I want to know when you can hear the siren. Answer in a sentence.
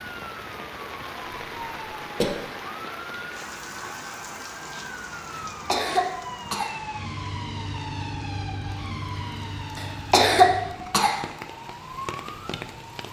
The siren can be heard from 0.0 to 13.0 s.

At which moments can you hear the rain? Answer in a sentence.
You can hear the rain from 0.0 to 13.0 s.